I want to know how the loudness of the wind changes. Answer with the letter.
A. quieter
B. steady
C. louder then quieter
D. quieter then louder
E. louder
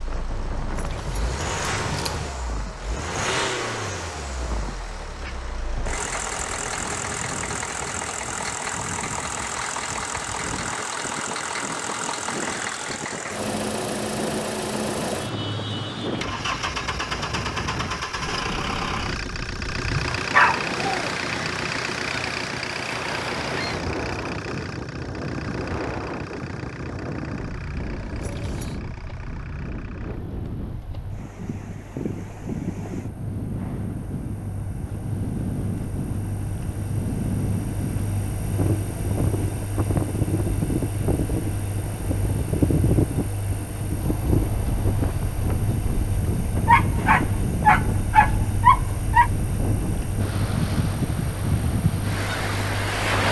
E.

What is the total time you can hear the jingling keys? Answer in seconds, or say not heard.
3 s.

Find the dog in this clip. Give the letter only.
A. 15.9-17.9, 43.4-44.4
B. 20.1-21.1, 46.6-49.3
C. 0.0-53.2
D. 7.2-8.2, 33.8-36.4
B.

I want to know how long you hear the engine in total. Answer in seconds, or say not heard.
53 s.